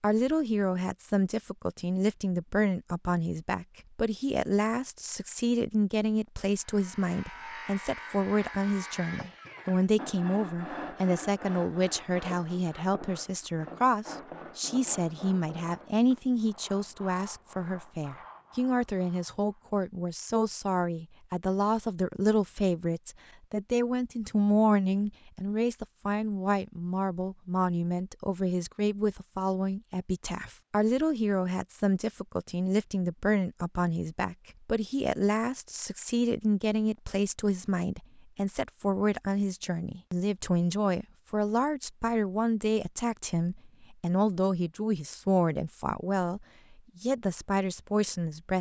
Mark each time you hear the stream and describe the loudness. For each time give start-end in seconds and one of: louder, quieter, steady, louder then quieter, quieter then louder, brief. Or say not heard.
not heard.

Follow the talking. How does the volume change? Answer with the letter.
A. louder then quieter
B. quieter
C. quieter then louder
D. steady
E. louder
D.